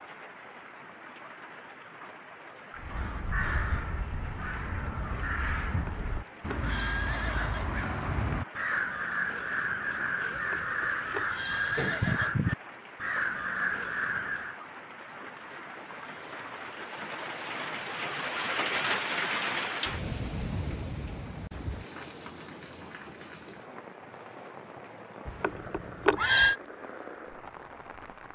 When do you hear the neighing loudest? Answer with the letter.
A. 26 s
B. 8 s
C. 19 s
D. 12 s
A.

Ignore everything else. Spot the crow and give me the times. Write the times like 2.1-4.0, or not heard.
2.8-14.6.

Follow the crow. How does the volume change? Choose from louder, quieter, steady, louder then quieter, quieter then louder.
louder.